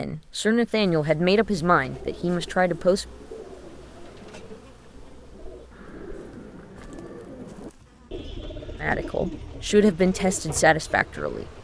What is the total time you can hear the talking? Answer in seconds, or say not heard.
6 s.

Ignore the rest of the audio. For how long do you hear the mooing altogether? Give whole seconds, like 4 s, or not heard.
not heard.